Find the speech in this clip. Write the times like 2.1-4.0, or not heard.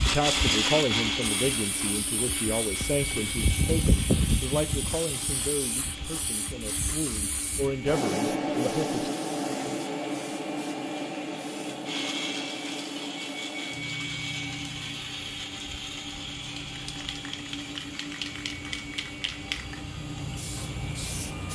0.0-9.1.